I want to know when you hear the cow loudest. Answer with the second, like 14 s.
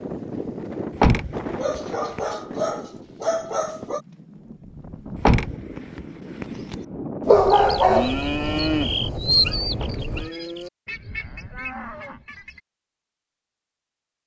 9 s.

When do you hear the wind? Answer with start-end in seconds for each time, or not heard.
0.0-10.3.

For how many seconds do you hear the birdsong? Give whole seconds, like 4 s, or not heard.
not heard.